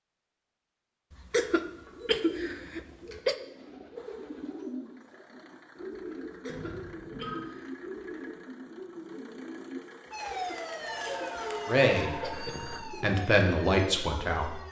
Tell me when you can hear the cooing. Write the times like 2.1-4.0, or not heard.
1.8-13.2.